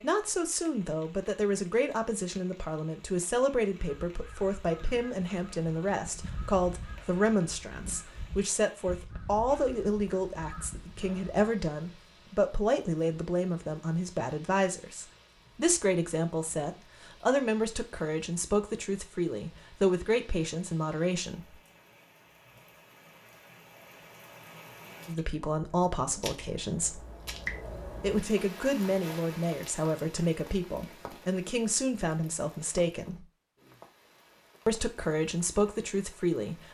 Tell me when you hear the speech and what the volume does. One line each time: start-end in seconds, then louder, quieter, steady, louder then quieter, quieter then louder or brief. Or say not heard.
0.0-21.6 steady
25.1-27.0 brief
28.0-33.2 steady
34.6-36.6 brief.